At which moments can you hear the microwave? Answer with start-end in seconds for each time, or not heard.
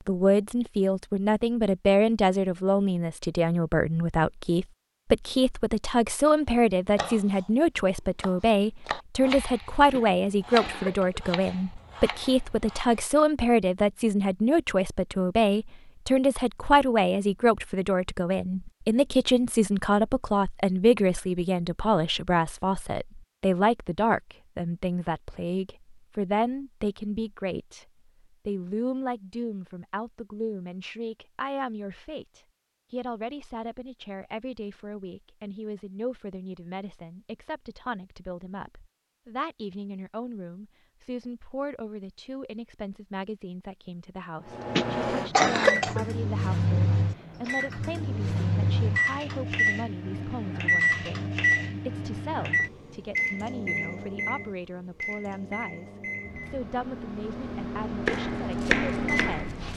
44.5-59.7.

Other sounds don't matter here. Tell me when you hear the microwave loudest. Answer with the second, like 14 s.
51 s.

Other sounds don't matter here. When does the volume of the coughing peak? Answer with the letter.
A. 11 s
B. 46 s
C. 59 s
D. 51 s
B.